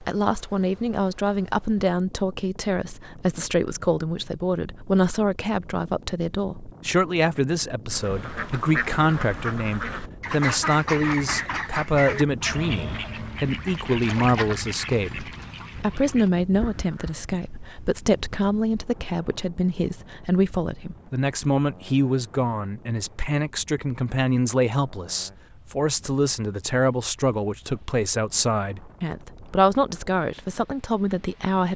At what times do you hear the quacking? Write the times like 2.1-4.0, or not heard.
7.8-17.2.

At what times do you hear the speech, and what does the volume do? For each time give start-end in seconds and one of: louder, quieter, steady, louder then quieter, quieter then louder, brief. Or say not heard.
0.0-31.7 steady.